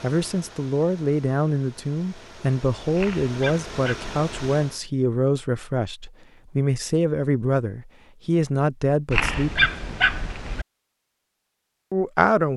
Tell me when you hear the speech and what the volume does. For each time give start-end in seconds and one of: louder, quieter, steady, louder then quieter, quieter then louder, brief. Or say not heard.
0.0-9.7 steady
11.9-12.5 brief.